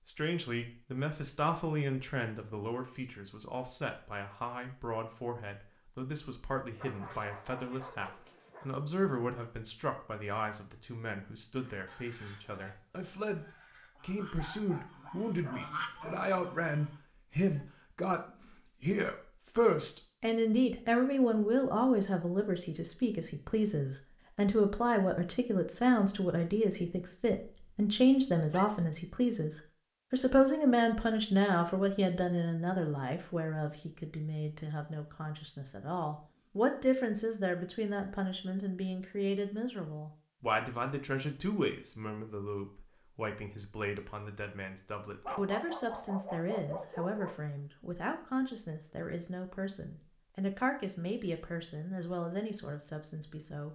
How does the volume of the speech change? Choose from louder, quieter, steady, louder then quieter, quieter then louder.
louder then quieter.